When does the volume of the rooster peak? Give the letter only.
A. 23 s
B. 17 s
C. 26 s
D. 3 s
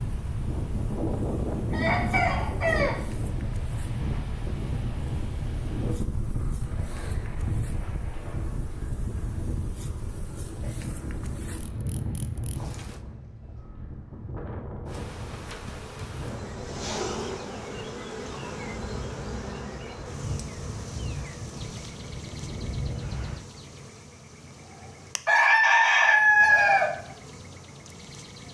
C.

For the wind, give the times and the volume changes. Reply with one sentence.
You can hear the wind from 0.0 to 23.4 s, getting quieter.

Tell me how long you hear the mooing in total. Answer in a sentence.
The mooing can't be heard in this clip.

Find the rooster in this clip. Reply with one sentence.
The rooster can be heard from 1.7 to 3.0 s and from 25.2 to 26.9 s.